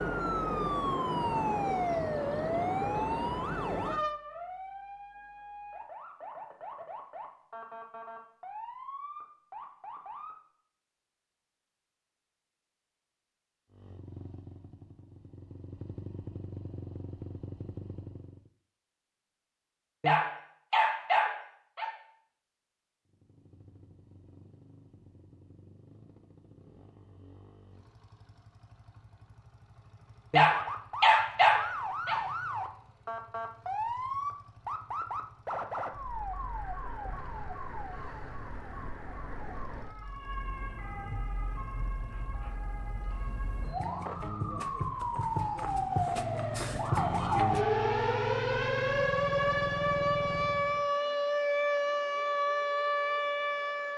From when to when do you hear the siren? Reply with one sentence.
You can hear the siren from 0.0 to 10.4 s and from 30.5 to 53.9 s.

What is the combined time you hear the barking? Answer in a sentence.
The barking can be heard for 4 seconds in total.